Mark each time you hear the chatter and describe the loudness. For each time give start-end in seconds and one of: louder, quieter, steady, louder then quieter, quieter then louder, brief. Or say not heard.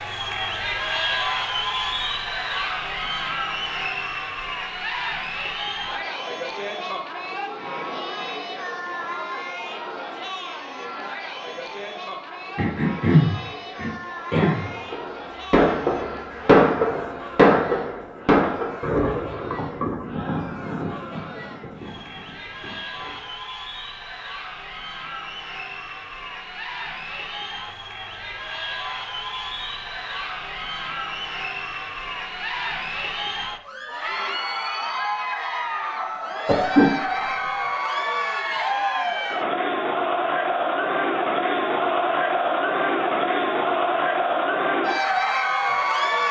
0.0-46.2 quieter then louder.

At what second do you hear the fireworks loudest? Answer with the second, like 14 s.
17 s.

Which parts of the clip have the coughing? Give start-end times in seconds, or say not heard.
12.6-14.7, 36.5-37.3.